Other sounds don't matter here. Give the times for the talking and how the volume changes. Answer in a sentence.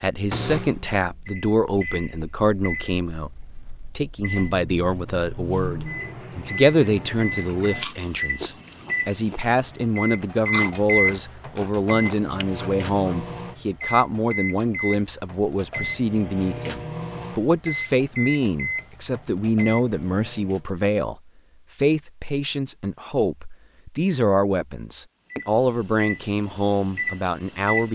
The talking can be heard from 0.0 to 27.8 s, at a steady volume.